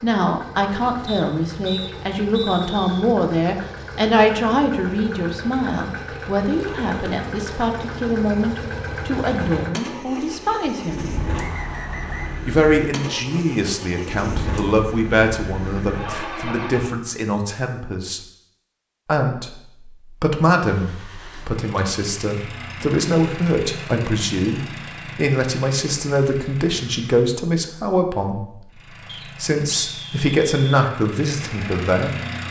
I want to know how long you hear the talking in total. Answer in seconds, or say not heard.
30 s.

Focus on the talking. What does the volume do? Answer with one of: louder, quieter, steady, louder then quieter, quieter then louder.
steady.